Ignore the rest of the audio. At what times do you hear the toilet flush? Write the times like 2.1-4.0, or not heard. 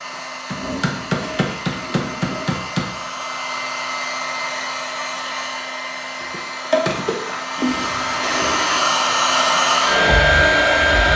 0.5-2.6, 7.5-8.9.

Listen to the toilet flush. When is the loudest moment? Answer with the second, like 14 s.
8 s.